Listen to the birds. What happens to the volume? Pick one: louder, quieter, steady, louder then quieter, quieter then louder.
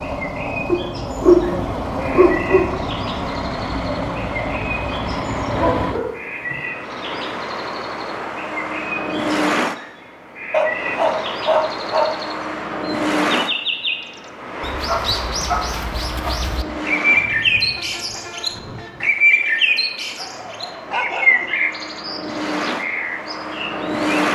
louder.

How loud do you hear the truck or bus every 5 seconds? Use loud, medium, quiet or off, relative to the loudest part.
loud, loud, loud, medium, loud.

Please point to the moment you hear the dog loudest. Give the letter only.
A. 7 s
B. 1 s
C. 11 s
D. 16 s
B.